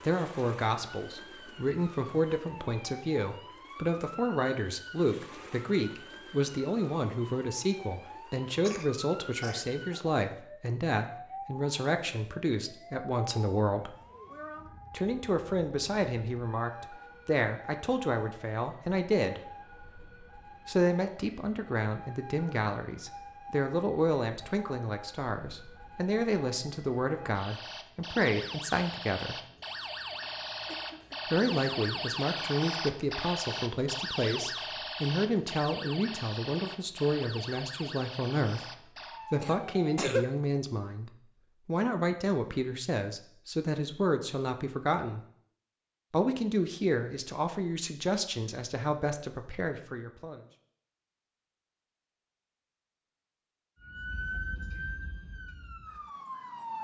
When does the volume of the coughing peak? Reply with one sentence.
The loudest moment of the coughing is at 40 seconds.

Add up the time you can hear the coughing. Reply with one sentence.
You can hear the coughing for 3 seconds altogether.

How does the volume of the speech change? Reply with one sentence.
The loudness of the speech stays about the same.